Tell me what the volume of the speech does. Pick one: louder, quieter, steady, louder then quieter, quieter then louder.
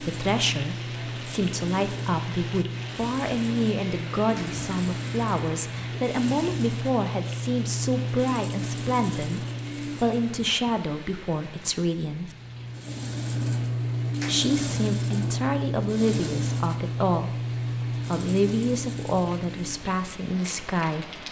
steady.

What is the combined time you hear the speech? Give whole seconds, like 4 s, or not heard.
19 s.